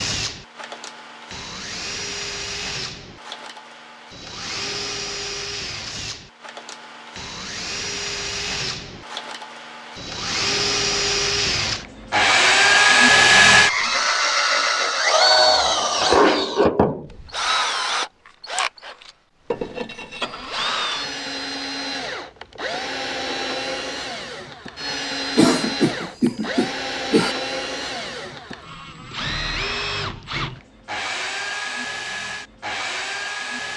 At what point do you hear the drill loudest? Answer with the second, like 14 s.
13 s.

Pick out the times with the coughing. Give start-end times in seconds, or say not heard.
25.4-27.4.